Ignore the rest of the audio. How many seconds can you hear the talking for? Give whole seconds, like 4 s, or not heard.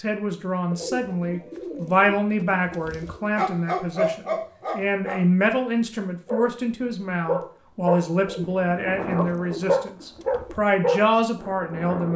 12 s.